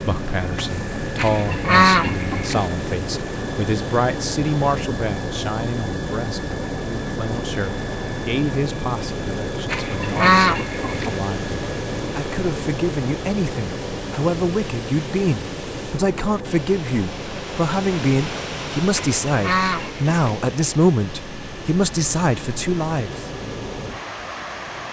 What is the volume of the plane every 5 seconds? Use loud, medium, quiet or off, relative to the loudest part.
loud, loud, loud, medium, medium.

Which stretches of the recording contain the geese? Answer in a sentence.
The geese can be heard from 1.1 to 2.6 s, from 9.7 to 11.2 s and from 18.9 to 20.4 s.